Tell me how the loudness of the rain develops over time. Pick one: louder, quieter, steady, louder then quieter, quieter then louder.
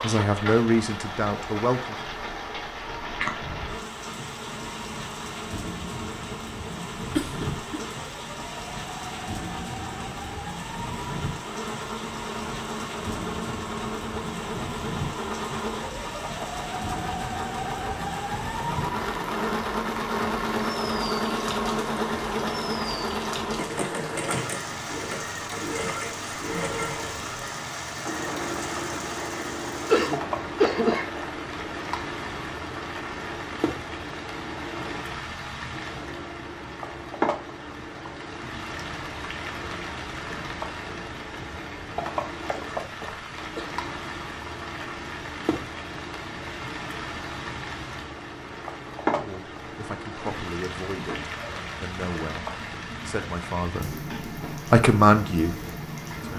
steady.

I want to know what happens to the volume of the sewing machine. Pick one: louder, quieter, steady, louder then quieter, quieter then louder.
louder then quieter.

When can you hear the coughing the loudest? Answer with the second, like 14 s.
31 s.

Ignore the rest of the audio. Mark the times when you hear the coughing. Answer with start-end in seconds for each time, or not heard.
7.2-7.6, 29.9-31.1, 42.9-43.8.